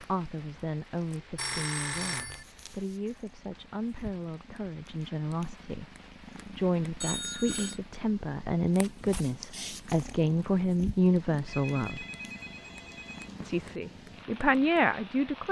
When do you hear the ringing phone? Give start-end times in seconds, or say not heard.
1.4-2.5, 7.0-7.8, 11.4-13.3.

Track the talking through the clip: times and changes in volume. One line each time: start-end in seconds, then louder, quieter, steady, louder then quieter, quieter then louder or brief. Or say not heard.
0.0-12.1 louder
13.4-15.4 brief.